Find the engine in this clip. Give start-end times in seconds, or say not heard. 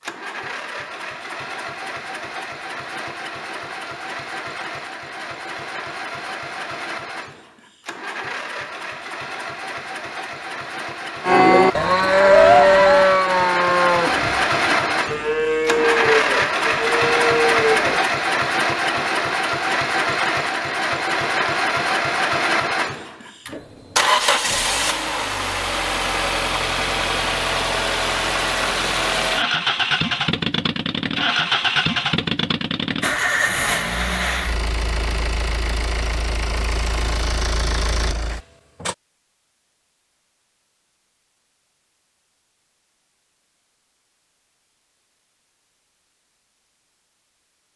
0.0-39.0.